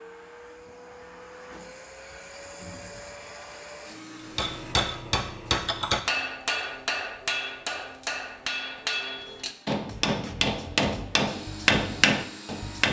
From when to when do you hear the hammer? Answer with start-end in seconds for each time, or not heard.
4.3-12.8.